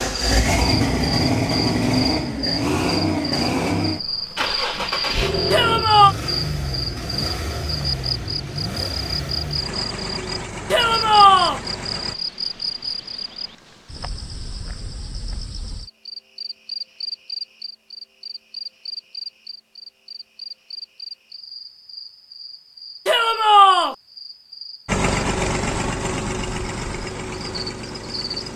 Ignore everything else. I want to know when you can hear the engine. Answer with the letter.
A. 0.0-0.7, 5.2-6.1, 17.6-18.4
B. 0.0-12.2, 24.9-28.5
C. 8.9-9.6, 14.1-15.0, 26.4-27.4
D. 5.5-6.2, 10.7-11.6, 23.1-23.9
B.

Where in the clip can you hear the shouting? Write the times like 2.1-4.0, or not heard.
5.5-6.2, 10.7-11.6, 23.1-23.9.